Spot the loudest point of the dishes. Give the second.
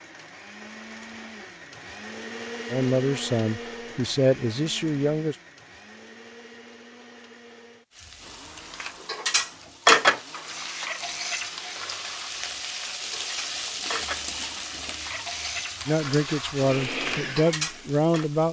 10 s.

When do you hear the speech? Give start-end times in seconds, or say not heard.
2.7-5.3, 15.8-18.4.